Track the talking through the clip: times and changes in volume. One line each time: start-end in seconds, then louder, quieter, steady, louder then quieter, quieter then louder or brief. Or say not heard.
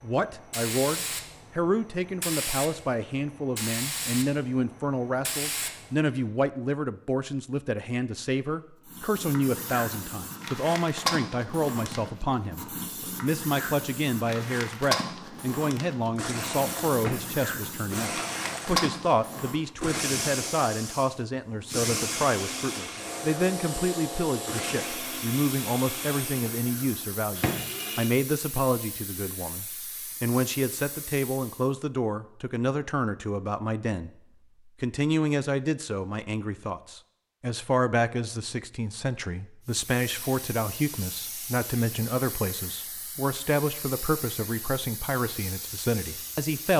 0.0-34.1 steady
34.8-46.7 steady.